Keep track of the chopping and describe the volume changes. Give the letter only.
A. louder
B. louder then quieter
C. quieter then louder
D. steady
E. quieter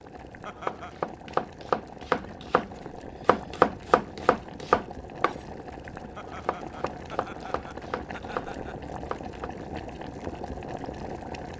E.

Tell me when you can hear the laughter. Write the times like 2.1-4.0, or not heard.
0.5-1.0, 6.2-8.8.